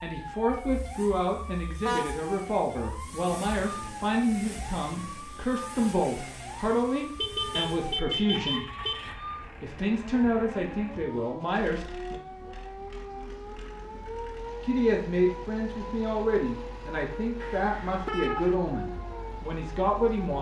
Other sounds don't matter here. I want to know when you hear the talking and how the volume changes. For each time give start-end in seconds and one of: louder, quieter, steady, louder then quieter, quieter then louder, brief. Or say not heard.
0.0-8.7 steady
9.6-12.2 brief
14.6-20.3 steady.